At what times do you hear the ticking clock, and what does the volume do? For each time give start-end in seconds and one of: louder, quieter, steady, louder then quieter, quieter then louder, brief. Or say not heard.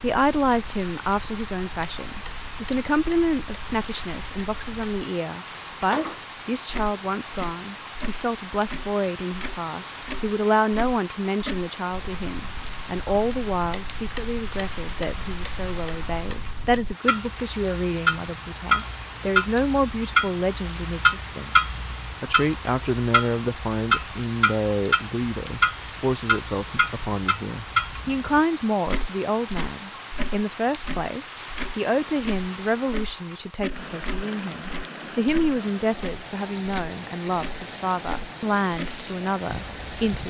0.0-40.2 louder then quieter.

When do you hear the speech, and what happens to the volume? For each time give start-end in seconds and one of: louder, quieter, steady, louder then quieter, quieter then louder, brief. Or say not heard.
0.0-40.2 steady.